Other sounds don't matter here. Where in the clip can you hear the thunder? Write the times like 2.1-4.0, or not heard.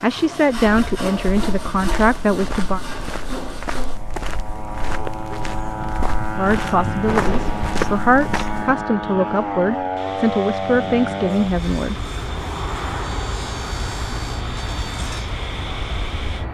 7.0-8.0.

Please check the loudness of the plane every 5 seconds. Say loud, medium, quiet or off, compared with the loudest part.
medium, loud, loud, medium.